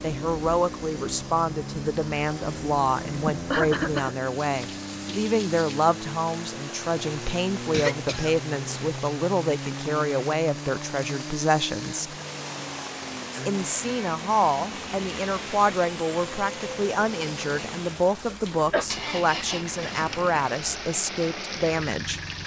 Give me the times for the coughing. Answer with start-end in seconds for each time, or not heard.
3.2-4.2, 7.7-8.9, 18.3-18.9.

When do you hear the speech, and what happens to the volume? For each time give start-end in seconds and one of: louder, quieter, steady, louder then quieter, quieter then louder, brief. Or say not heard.
0.0-12.2 steady
13.4-22.2 steady.